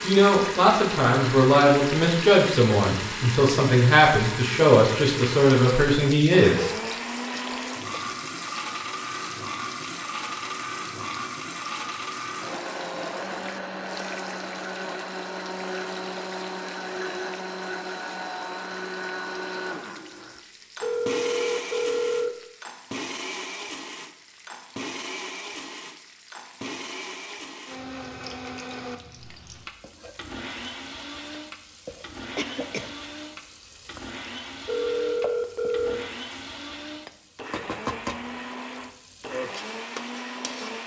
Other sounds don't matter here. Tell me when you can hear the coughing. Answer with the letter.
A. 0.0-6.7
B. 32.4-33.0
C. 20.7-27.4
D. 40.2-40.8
B.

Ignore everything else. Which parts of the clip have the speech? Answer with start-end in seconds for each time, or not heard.
0.0-6.7.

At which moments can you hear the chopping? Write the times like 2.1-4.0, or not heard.
not heard.